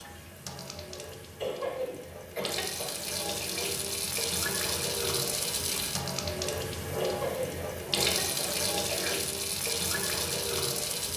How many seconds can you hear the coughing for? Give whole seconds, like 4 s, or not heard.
4 s.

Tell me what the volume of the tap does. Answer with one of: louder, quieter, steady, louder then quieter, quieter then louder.
louder.